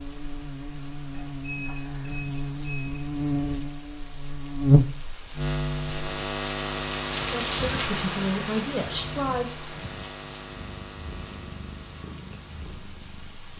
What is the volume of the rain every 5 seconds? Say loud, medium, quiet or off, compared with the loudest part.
quiet, loud, quiet.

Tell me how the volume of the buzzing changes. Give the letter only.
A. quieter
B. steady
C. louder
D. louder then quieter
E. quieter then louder
D.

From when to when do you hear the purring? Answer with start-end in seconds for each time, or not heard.
10.3-13.5.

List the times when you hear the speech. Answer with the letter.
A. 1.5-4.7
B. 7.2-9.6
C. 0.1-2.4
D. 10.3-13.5
B.